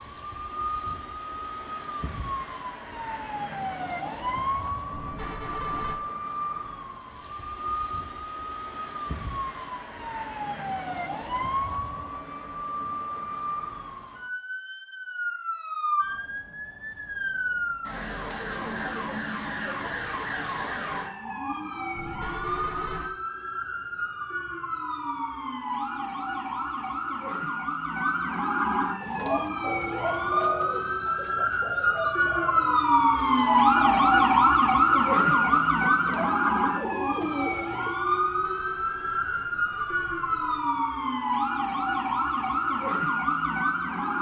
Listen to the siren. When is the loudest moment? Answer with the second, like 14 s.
34 s.